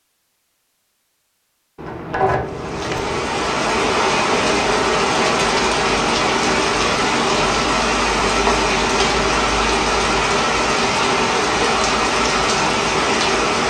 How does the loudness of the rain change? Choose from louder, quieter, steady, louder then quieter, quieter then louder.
steady.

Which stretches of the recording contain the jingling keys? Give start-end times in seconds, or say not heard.
1.8-3.2, 8.2-8.7.